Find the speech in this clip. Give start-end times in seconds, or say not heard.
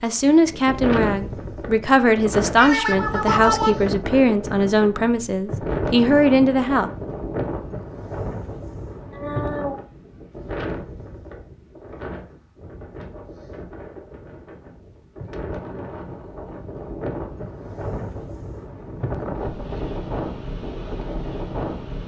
0.0-6.9.